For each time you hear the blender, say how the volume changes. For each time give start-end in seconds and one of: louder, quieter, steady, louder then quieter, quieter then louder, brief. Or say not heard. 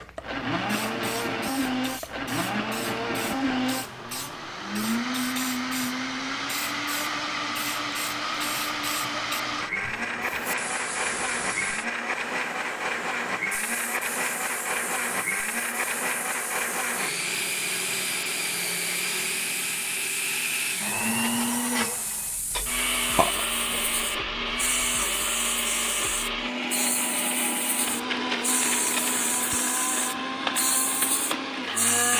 0.0-32.1 steady.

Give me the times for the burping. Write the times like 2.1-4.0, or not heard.
23.1-24.9.